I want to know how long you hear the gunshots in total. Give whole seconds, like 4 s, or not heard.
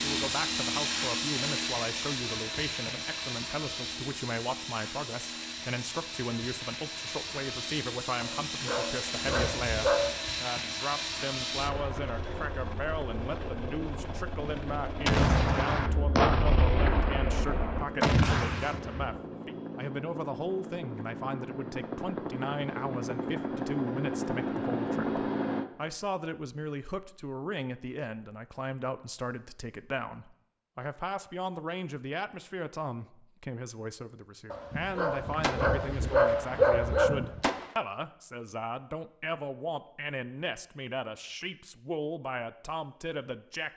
7 s.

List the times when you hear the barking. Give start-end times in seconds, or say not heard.
8.2-10.1, 34.5-37.1.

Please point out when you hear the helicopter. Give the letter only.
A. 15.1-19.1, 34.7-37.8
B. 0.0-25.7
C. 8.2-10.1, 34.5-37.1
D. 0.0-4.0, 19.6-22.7
B.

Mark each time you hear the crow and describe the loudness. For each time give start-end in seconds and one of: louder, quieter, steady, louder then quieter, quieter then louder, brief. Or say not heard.
not heard.